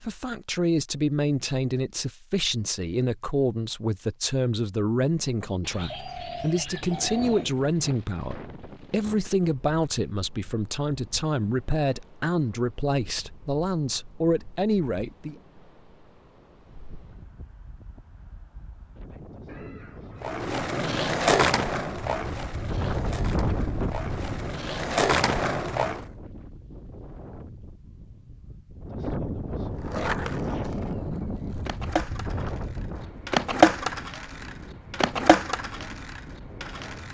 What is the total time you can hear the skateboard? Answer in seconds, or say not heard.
13 s.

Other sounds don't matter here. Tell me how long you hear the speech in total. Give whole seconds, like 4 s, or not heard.
15 s.